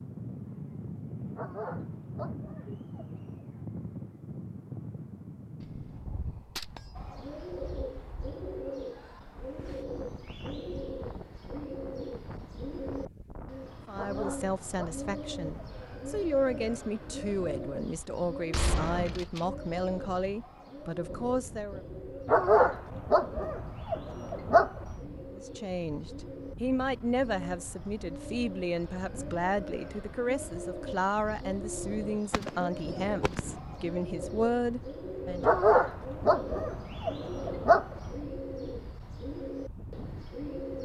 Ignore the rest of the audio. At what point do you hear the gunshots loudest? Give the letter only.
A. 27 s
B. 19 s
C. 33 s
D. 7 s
B.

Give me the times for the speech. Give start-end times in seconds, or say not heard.
13.8-21.8, 25.3-35.5.